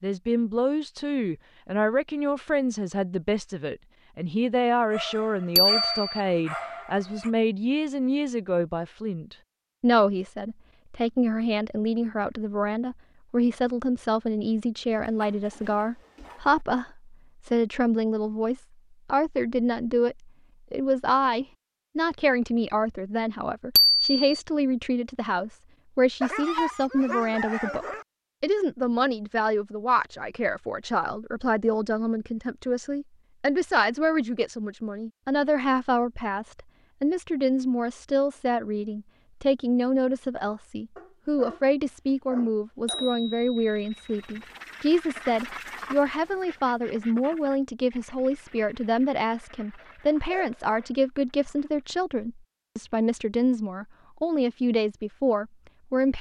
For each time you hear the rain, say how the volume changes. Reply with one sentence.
The rain can't be heard in this clip.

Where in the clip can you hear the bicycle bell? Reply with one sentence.
The bicycle bell can be heard from 5.5 to 6.2 s, from 23.8 to 24.4 s and from 42.9 to 44.4 s.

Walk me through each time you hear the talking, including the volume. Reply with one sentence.
You can hear the talking from 0.0 to 56.1 s, at a steady volume.